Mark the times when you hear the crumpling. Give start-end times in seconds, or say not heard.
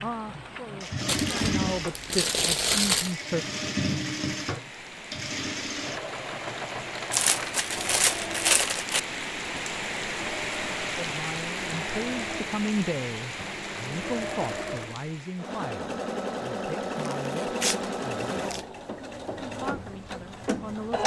1.1-3.1, 7.1-9.0, 17.1-18.6.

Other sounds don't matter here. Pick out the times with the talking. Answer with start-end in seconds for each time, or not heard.
0.0-3.5, 10.9-18.6, 19.6-21.0.